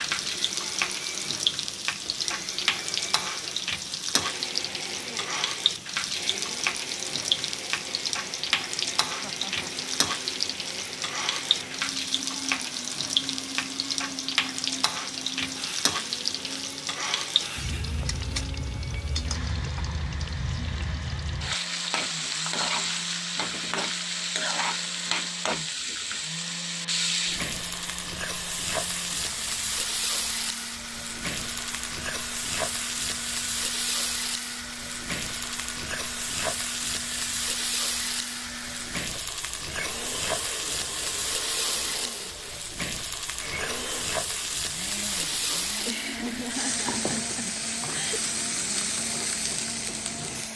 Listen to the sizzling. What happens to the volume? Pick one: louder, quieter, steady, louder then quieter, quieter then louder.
steady.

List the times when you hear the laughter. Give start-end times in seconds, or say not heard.
9.1-9.9, 45.8-48.2.